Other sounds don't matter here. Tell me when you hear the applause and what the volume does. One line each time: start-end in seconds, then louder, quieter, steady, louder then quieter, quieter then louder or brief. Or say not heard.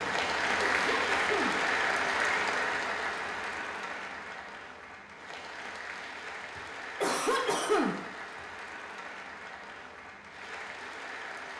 0.0-11.5 quieter.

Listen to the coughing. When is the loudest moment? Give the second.
8 s.